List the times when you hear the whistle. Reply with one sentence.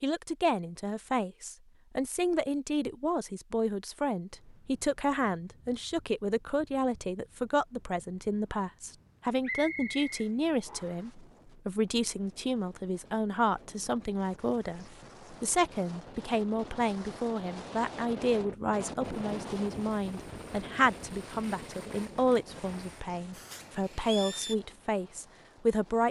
You can hear the whistle from 9.4 to 11.1 s.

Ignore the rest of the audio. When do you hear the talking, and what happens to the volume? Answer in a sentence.
The talking can be heard from 0.0 to 26.0 s, at a steady volume.